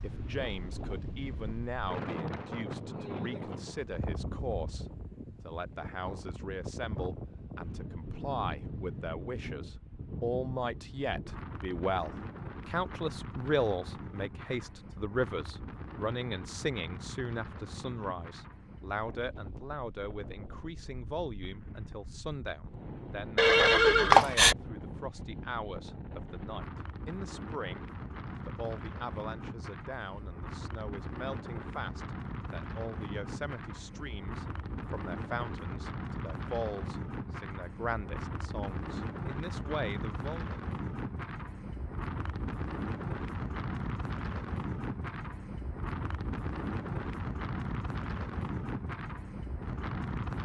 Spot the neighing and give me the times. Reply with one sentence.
You can hear the neighing from 23.4 to 24.6 s.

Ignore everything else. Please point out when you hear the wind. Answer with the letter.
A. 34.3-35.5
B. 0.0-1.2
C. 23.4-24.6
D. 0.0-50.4
D.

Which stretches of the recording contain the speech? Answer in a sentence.
You can hear the speech from 0.0 to 40.5 s.